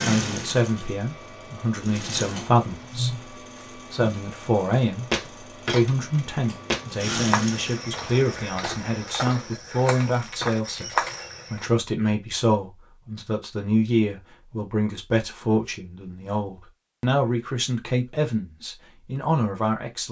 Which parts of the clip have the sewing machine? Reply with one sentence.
You can hear the sewing machine from 0.0 to 8.5 s.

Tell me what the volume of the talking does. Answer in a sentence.
The loudness of the talking stays about the same.